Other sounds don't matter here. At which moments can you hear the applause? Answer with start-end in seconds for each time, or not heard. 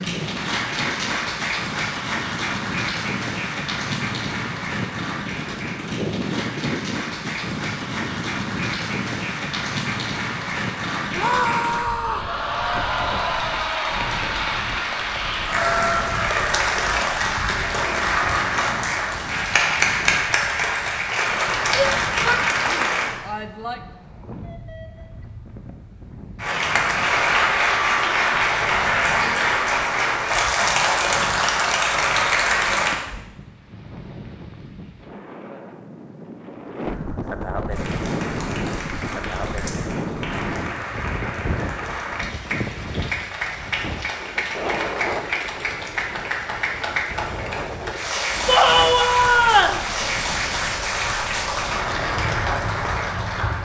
0.0-23.1, 26.4-33.0, 37.7-53.5.